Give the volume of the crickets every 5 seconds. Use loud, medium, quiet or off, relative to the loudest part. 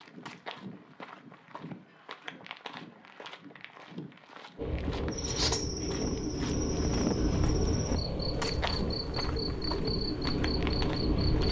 off, loud, loud.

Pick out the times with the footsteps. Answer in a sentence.
The footsteps can be heard from 0.0 to 11.4 s.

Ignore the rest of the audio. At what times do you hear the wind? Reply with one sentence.
The wind can be heard from 4.5 to 11.4 s.